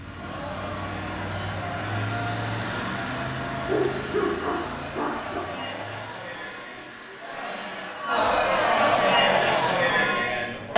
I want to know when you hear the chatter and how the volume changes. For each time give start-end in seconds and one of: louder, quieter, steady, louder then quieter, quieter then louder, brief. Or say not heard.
0.0-10.7 louder.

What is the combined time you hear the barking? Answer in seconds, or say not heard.
2 s.